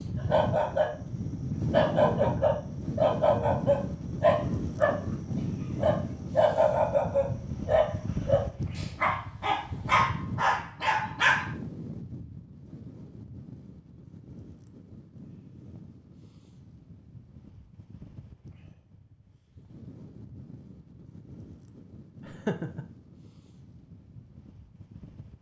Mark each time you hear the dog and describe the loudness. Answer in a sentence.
The dog can be heard briefly from 0.1 to 0.9 s; and from 1.7 to 11.5 s, at a steady volume.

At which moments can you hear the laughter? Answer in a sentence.
The laughter can be heard from 2.0 to 2.6 s and from 22.2 to 22.9 s.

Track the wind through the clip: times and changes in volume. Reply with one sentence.
You can hear the wind from 0.0 to 25.3 s, getting quieter.